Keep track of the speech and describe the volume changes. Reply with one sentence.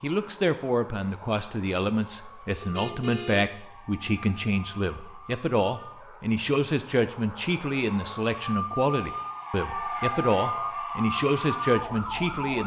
The loudness of the speech stays about the same.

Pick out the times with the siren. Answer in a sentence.
You can hear the siren from 0.0 to 12.6 s.